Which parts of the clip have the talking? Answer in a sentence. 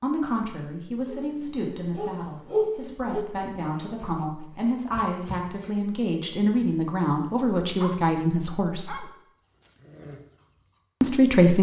You can hear the talking from 0.0 to 9.1 s and from 11.0 to 11.5 s.